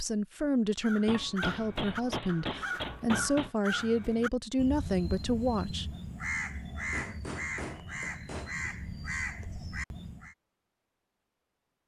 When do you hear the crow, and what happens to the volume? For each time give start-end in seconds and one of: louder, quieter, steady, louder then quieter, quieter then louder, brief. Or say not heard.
0.8-10.3 steady.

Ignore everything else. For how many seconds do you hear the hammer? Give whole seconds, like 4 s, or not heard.
4 s.